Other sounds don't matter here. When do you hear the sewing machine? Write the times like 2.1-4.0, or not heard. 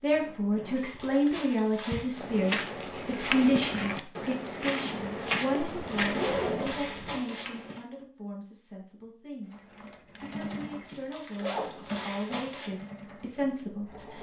9.4-14.1.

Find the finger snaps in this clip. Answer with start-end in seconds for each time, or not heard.
not heard.